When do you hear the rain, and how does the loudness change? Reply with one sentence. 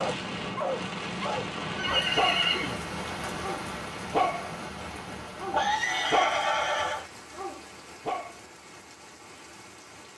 You can hear the rain from 0.0 to 10.1 s, getting quieter.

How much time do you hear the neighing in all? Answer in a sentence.
The neighing can be heard for 3 seconds in total.